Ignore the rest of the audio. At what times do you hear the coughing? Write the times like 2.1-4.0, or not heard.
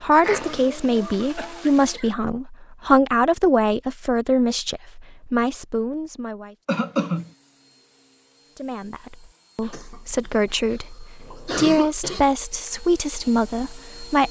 0.1-2.1, 6.7-7.2, 9.6-12.2.